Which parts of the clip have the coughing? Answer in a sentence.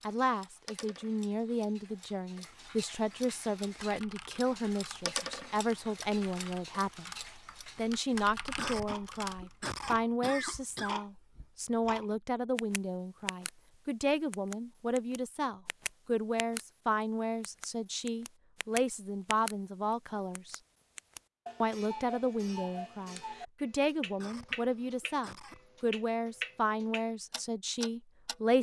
The coughing can be heard from 8.6 to 11.0 s and from 24.2 to 25.6 s.